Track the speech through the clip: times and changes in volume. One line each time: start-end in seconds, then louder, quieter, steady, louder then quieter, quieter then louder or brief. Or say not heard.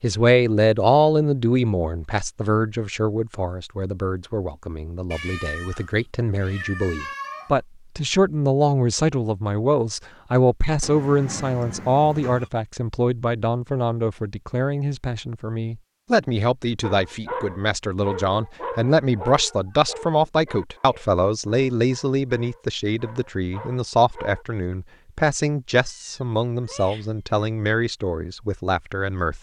0.0-29.3 steady.